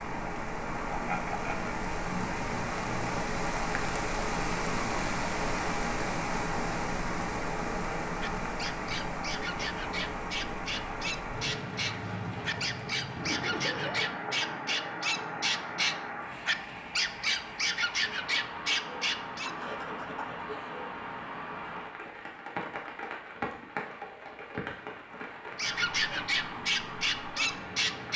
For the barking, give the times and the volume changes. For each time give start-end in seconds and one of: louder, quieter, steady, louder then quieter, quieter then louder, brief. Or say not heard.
8.2-19.5 louder
25.6-28.1 brief.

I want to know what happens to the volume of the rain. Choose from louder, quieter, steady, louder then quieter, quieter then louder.
quieter.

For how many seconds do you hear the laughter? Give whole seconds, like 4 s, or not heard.
3 s.